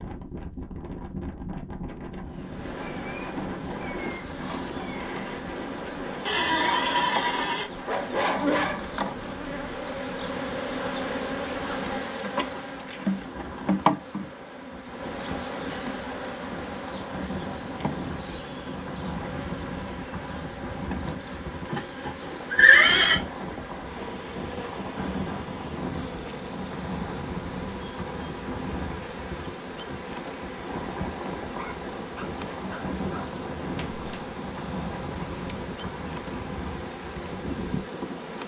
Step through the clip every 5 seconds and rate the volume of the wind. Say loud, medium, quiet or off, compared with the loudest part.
loud, loud, medium, loud, loud, loud, loud, loud.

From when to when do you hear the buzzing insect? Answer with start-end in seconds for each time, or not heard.
2.2-38.4.